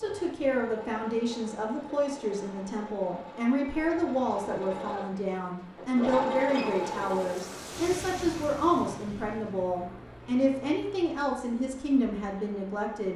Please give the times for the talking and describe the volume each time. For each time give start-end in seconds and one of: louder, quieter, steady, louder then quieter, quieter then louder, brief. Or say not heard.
0.0-13.1 steady.